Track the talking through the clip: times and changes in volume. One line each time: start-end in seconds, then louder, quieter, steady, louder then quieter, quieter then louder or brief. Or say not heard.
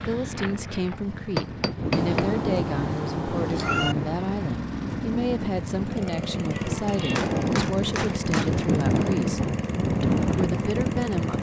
0.1-11.3 steady.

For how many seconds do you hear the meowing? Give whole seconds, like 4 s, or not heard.
3 s.